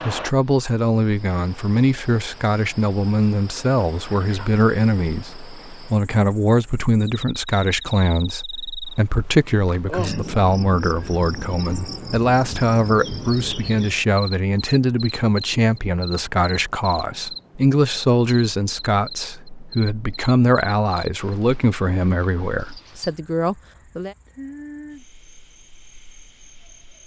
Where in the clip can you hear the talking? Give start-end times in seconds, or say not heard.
0.0-24.1.